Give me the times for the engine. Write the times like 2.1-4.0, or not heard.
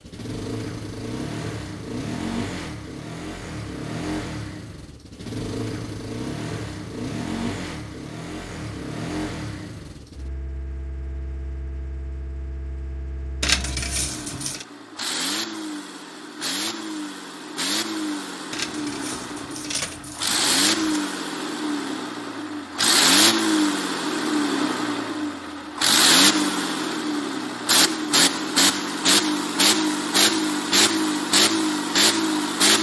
0.0-32.7.